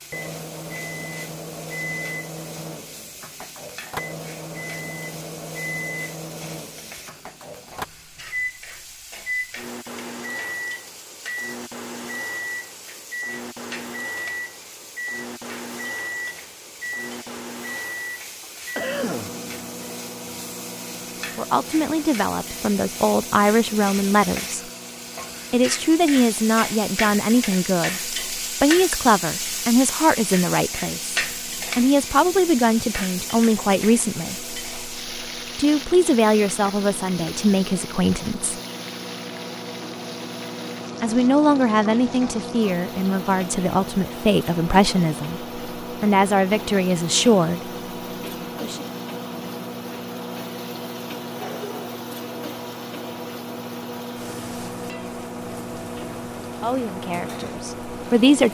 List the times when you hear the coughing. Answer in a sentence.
You can hear the coughing from 18.4 to 19.3 s.